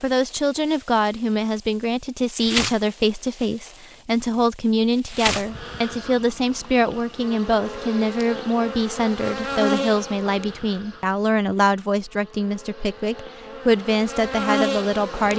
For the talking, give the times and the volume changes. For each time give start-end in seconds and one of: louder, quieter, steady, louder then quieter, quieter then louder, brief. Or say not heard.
0.0-15.3 steady.